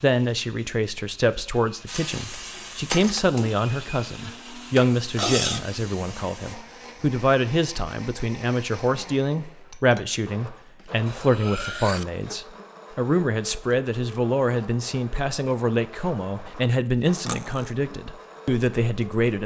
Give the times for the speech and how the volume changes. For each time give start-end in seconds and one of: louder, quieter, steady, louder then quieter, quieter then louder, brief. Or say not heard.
0.0-19.4 steady.